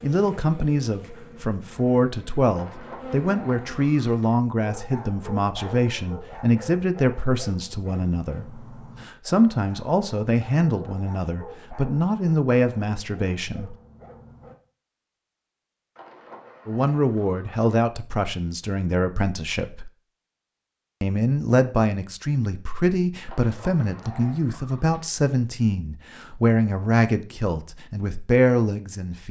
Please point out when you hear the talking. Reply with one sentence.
The talking can be heard from 0.0 to 13.8 s, from 16.6 to 19.9 s and from 21.0 to 29.2 s.